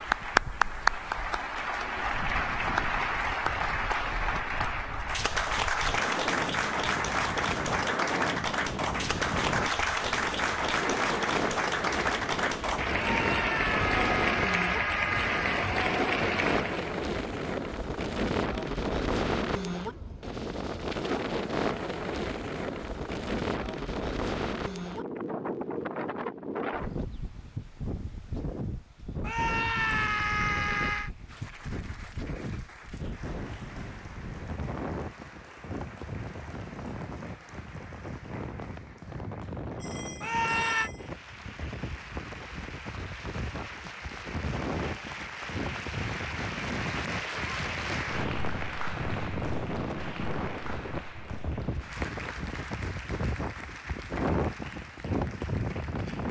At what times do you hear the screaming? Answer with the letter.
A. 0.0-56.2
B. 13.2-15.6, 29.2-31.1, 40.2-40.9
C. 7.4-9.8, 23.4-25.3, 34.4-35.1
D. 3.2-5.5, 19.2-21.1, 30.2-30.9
B.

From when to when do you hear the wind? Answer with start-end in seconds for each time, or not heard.
0.0-56.2.